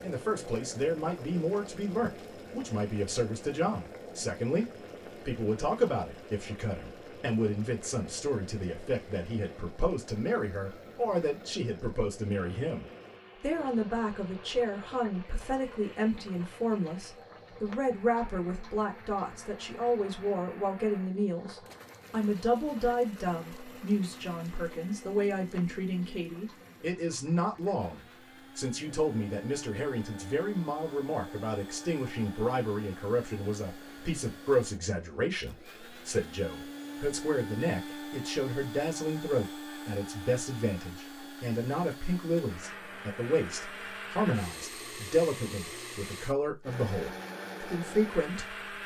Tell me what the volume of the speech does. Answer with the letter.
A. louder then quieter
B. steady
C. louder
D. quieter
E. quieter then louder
B.